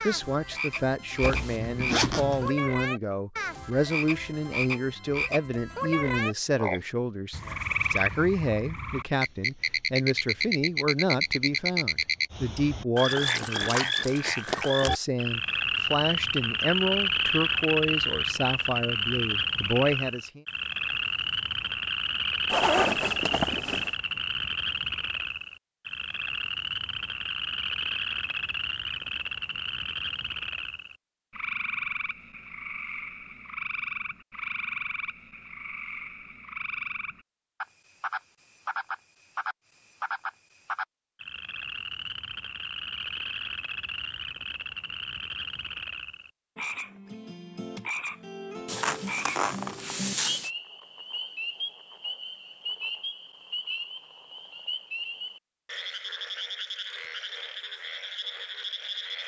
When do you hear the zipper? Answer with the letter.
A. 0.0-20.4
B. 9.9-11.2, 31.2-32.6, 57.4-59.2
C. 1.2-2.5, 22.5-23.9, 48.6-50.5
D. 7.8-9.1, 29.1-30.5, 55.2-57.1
C.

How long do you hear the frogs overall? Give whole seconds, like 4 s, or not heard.
59 s.